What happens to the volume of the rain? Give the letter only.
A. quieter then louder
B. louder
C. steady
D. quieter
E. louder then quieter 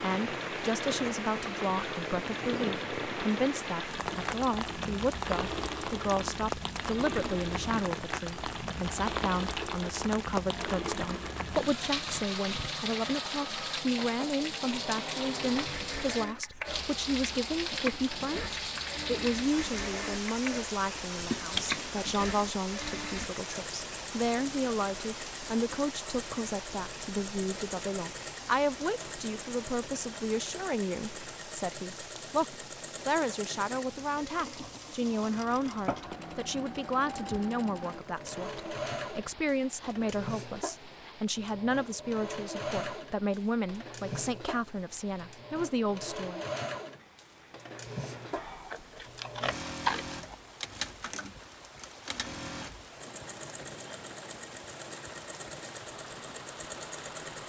D.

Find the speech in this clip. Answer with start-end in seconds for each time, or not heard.
0.0-46.4.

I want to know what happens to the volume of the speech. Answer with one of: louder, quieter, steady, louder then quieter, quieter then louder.
steady.